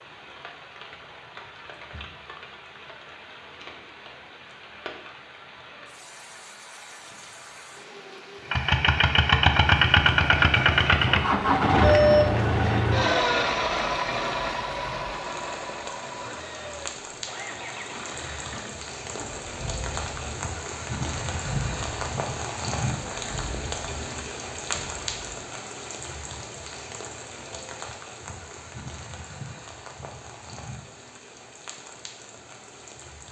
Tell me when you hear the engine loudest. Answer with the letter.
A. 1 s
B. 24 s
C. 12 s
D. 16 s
C.